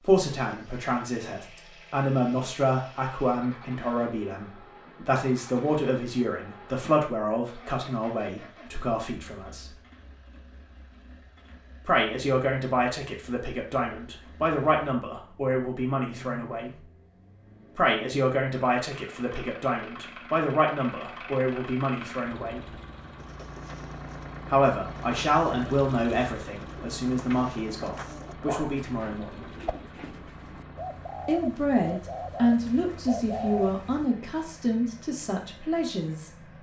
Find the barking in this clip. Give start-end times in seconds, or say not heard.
27.8-28.8.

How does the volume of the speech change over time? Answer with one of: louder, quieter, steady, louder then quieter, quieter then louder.
steady.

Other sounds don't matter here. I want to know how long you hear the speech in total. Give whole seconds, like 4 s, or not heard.
30 s.